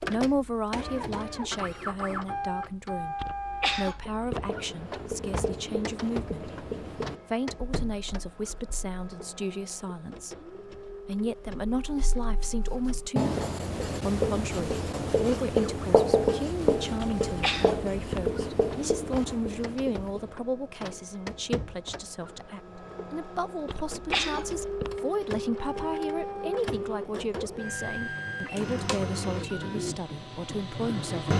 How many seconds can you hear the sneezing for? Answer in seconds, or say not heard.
4 s.